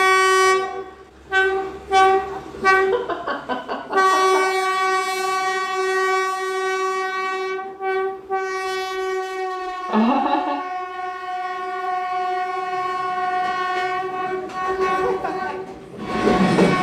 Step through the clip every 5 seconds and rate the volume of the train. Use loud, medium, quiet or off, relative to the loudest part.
loud, medium, medium, loud.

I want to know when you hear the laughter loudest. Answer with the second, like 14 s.
10 s.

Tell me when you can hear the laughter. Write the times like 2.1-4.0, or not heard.
2.6-4.7, 9.8-10.6.